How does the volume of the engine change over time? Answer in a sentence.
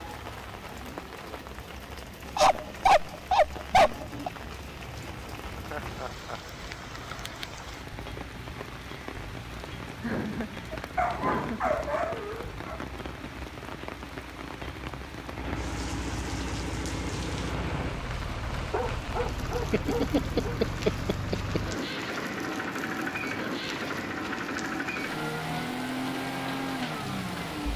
The volume of the engine goes up.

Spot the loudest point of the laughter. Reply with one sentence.
The volume of the laughter peaks at 21 seconds.